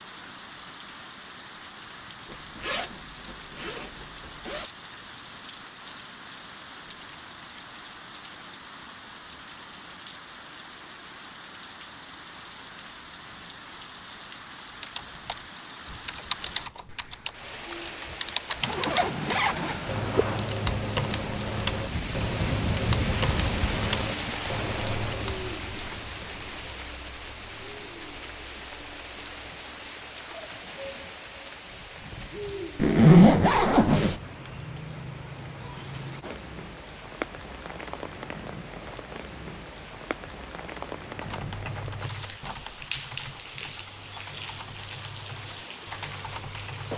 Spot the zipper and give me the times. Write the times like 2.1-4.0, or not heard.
2.3-4.7, 18.6-20.4, 32.8-34.1.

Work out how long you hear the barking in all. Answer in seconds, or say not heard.
not heard.